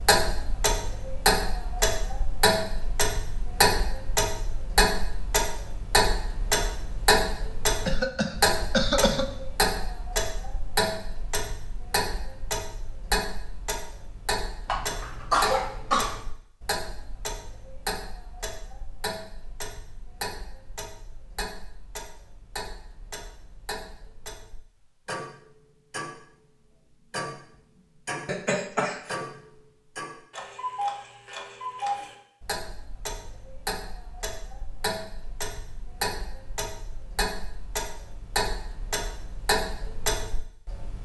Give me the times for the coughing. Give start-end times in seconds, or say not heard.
7.8-9.3, 14.7-16.2, 28.2-29.1.